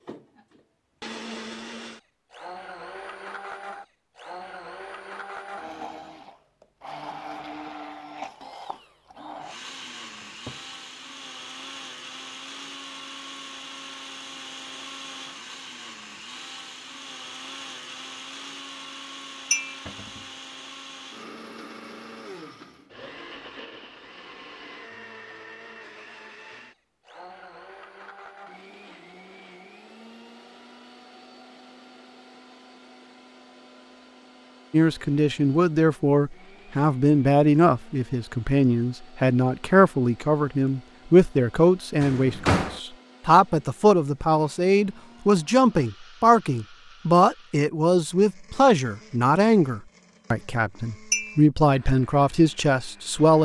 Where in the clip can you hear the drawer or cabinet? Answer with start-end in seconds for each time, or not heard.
10.2-10.7, 19.9-20.3, 42.0-42.8.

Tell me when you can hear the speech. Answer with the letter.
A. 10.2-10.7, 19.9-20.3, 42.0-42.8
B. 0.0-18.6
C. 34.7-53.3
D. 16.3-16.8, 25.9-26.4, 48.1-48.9
C.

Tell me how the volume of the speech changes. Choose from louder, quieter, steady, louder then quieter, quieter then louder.
steady.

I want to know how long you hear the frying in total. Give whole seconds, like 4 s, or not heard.
not heard.